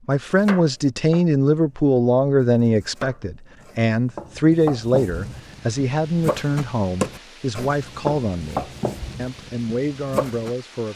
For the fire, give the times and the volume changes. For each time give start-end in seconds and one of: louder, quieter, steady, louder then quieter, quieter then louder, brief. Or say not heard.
not heard.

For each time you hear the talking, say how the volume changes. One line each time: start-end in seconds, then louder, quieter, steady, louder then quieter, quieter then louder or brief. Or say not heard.
0.1-10.9 quieter.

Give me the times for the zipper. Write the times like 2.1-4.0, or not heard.
not heard.